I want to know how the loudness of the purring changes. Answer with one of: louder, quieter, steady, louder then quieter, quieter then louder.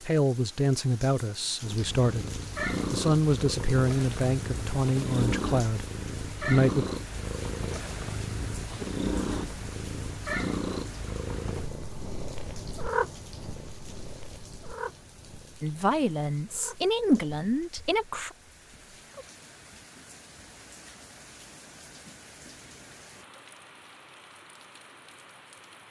quieter.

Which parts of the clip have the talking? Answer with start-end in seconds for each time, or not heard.
0.0-6.8, 15.6-18.3.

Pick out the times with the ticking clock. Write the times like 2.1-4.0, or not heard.
not heard.